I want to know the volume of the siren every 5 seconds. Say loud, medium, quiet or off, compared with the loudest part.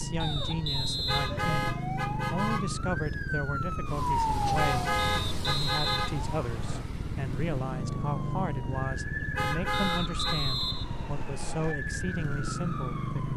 loud, medium, medium.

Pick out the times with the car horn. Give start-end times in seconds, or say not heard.
1.1-2.6, 4.5-6.2, 9.3-10.4.